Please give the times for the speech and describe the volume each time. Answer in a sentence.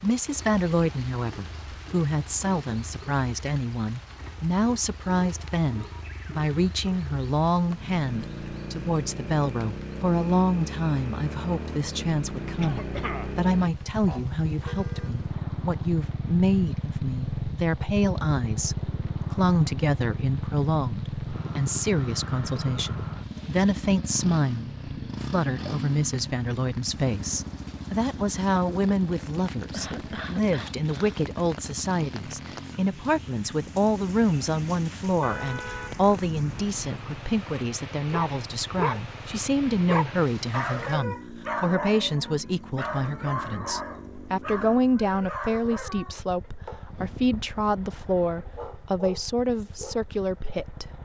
You can hear the speech from 0.0 to 51.0 s, at a steady volume.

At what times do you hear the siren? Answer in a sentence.
You can't hear the siren here.